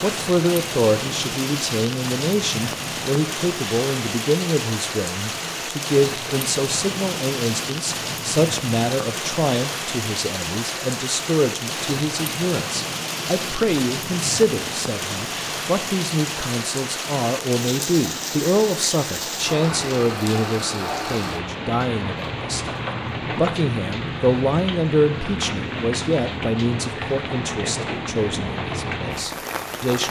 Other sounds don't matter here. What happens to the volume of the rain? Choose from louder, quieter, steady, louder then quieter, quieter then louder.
steady.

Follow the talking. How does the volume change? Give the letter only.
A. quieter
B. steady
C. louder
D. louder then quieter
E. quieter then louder
B.